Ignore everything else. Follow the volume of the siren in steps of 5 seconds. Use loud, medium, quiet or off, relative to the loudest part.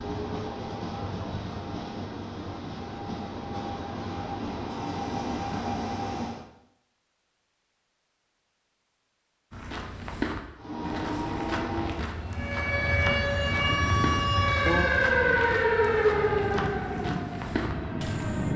off, off, loud, loud.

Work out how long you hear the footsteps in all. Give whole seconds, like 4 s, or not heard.
9 s.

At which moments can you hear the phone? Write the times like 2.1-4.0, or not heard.
not heard.